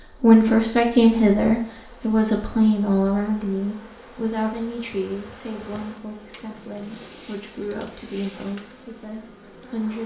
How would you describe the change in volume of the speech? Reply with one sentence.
The loudness of the speech goes down.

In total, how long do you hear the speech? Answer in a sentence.
You can hear the speech for 10 seconds altogether.